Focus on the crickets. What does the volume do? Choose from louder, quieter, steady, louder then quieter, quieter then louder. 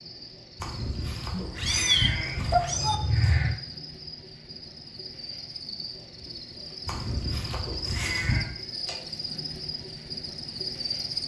louder.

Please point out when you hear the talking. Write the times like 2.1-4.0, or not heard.
not heard.